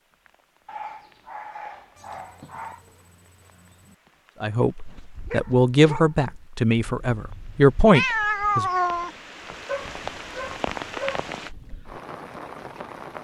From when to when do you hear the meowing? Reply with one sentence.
The meowing can be heard from 1.9 to 4.0 s and from 6.8 to 9.2 s.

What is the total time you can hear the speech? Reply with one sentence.
The speech can be heard for 4 seconds in total.